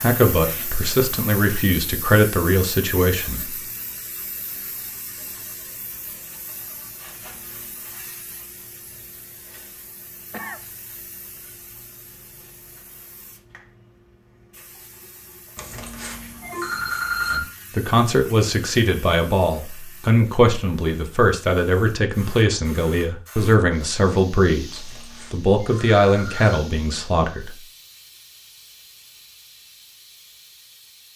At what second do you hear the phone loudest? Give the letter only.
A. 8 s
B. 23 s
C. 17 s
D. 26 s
C.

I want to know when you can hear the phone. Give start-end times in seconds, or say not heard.
7.0-8.0, 15.6-17.4, 24.7-26.6.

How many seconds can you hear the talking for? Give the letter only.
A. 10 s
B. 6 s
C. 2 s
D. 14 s
D.